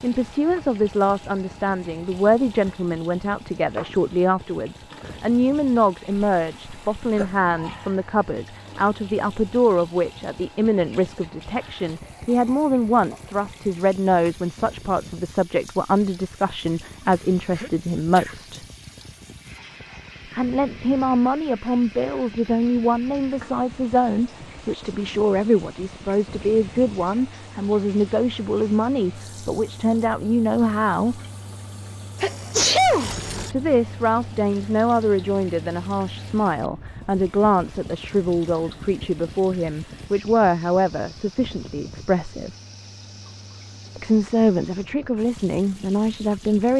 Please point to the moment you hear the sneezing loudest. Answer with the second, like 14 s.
33 s.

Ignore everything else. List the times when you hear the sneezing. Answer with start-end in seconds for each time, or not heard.
6.1-7.3, 17.1-18.4, 32.2-33.5.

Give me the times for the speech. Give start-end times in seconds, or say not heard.
0.0-18.6, 20.3-31.2, 33.5-42.5, 44.0-46.7.